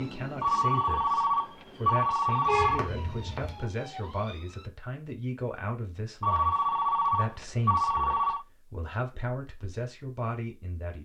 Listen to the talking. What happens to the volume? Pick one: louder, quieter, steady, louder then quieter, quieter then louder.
steady.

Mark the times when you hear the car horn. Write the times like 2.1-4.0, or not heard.
2.5-3.6.